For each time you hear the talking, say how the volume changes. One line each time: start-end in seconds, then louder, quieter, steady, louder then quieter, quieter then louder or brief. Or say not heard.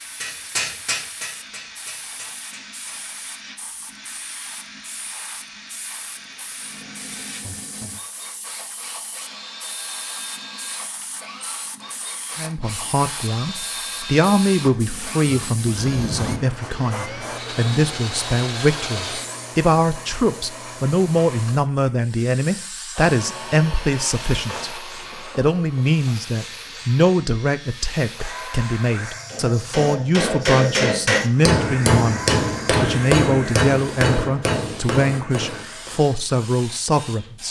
12.3-37.4 steady.